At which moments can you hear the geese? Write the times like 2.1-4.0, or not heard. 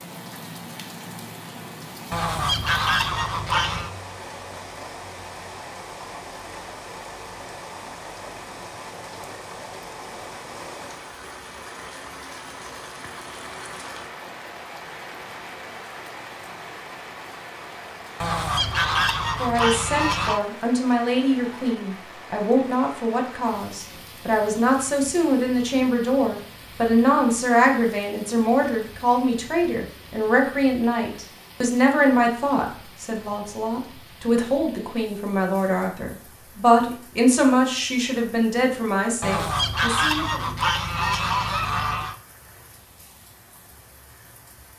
2.1-3.9, 18.2-20.4, 39.2-42.1.